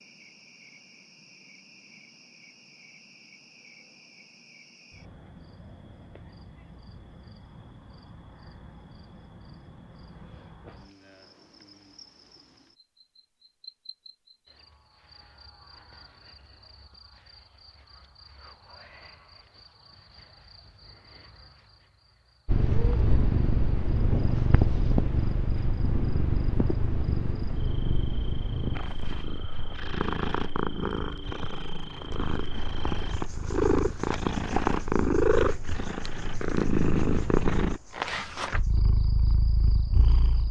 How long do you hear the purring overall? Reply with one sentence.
You can hear the purring for 18 seconds altogether.